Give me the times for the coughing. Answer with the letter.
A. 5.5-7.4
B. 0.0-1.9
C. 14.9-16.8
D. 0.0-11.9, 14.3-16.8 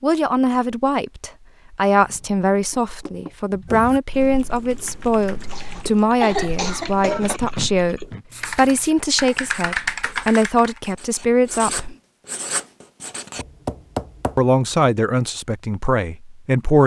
A.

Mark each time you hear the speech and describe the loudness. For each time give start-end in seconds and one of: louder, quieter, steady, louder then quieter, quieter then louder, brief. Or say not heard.
0.0-11.9 steady
14.3-16.8 brief.